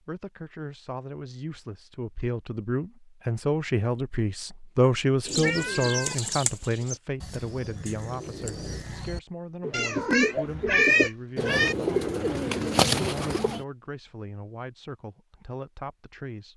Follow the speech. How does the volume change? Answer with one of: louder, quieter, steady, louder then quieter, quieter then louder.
louder then quieter.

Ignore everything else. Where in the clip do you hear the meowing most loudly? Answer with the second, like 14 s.
11 s.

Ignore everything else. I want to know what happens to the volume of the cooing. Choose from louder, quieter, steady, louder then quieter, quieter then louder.
quieter then louder.